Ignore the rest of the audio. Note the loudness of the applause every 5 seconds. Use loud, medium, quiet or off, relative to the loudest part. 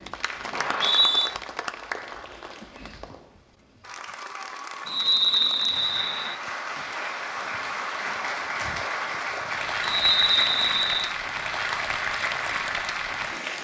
medium, loud, loud.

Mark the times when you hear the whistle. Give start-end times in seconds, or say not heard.
0.5-1.3, 4.8-6.3, 9.8-11.1.